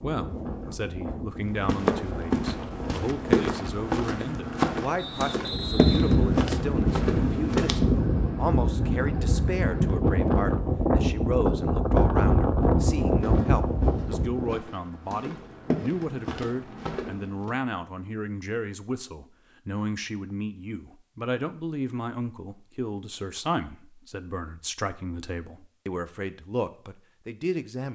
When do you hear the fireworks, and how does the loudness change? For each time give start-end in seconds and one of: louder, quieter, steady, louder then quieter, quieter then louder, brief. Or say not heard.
not heard.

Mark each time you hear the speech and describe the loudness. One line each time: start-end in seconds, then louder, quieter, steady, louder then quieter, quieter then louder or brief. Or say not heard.
0.0-27.9 steady.